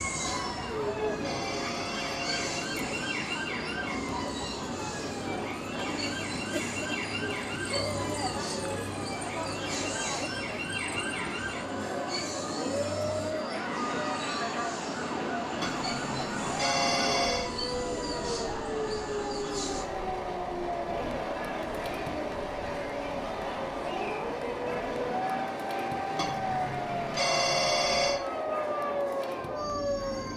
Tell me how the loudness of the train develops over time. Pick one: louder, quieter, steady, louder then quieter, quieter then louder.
steady.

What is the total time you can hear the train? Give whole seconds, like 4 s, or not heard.
30 s.